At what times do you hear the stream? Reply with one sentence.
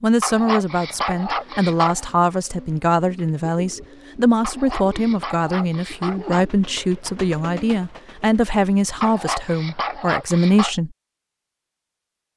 You can't hear the stream here.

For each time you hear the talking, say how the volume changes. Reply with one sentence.
The talking can be heard from 0.0 to 10.9 s, at a steady volume.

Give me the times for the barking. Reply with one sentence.
You can hear the barking from 0.2 to 2.1 s, from 4.4 to 6.5 s and from 9.0 to 10.8 s.